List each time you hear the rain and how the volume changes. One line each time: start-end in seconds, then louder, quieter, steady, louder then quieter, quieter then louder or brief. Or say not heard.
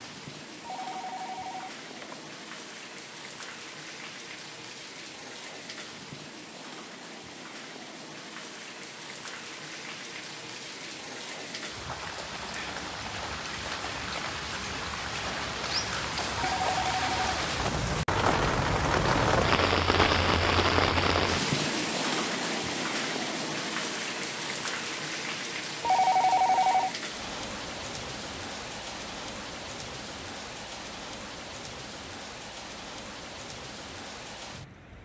0.0-34.9 louder then quieter.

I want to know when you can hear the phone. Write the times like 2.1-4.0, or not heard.
0.6-2.1, 16.4-17.2, 25.8-26.9.